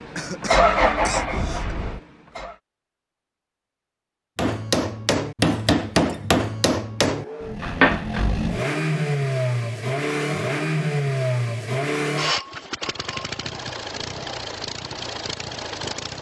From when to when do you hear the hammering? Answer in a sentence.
You can hear the hammering from 4.3 to 8.2 s.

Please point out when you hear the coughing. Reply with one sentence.
The coughing can be heard from 0.1 to 1.8 s.